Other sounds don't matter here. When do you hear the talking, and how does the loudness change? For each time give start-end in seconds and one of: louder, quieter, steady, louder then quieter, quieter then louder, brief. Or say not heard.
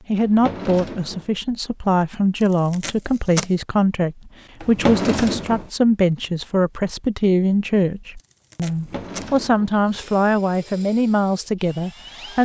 0.1-12.4 steady.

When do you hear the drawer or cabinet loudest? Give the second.
5 s.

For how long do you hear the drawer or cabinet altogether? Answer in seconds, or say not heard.
3 s.